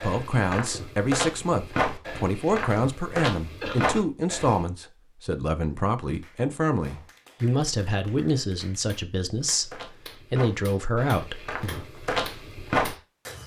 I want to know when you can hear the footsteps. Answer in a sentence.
The footsteps can be heard from 0.0 to 4.7 s and from 9.3 to 13.4 s.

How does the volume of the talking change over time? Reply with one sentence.
The loudness of the talking stays about the same.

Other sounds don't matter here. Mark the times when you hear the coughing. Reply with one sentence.
The coughing can be heard from 3.6 to 4.0 s.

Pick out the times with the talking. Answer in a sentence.
You can hear the talking from 0.0 to 11.8 s.